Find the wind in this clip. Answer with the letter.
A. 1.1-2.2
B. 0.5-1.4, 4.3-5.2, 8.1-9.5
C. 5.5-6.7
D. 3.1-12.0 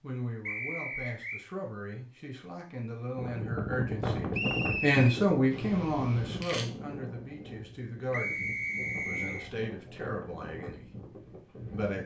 D.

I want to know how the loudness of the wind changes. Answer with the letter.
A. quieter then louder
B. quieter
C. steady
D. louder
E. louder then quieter
B.